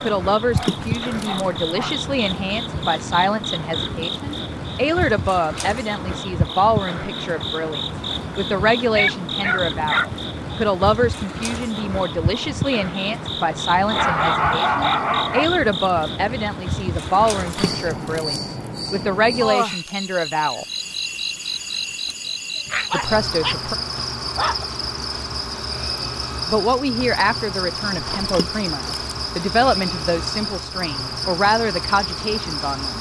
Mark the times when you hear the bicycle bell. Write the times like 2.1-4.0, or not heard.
not heard.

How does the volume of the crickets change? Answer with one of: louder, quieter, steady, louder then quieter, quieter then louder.
steady.